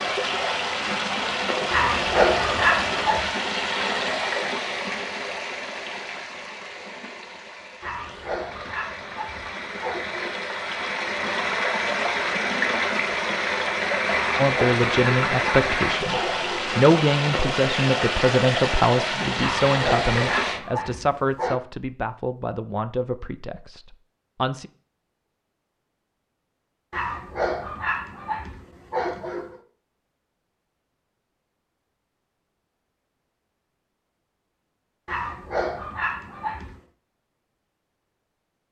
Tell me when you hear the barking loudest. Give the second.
2 s.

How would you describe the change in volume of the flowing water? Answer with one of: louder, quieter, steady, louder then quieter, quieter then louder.
quieter then louder.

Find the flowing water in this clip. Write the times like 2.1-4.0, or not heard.
0.0-20.6.